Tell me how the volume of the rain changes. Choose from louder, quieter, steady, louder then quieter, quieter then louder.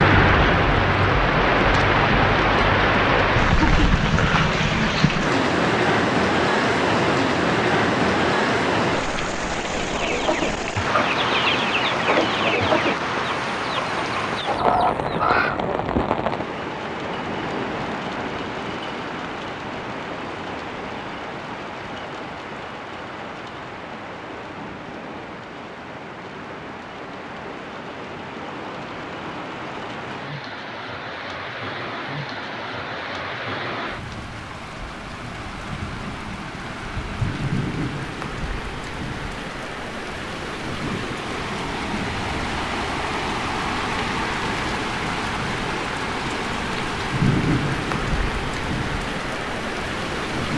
quieter then louder.